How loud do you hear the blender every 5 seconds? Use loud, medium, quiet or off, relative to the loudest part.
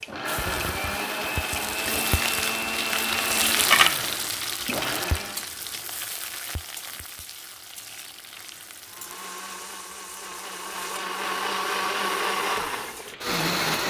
loud, medium, loud.